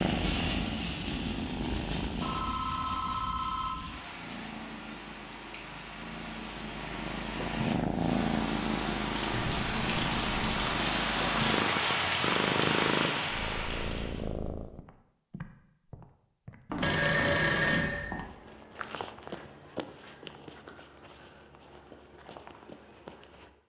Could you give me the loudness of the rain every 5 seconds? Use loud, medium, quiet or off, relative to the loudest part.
medium, medium, loud, off, off.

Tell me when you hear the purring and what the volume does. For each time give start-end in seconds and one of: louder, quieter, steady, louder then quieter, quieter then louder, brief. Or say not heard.
0.0-2.5 brief
3.9-14.8 louder.